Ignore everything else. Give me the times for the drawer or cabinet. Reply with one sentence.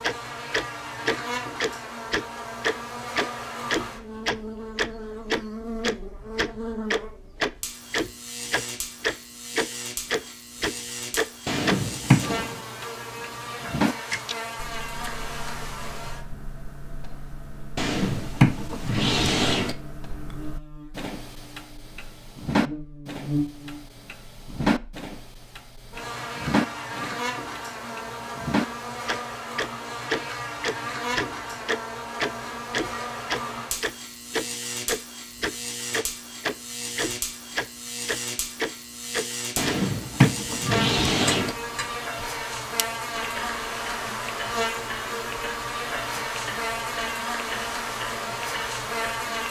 The drawer or cabinet can be heard from 11.4 to 12.5 s, from 17.8 to 19.8 s and from 39.5 to 41.5 s.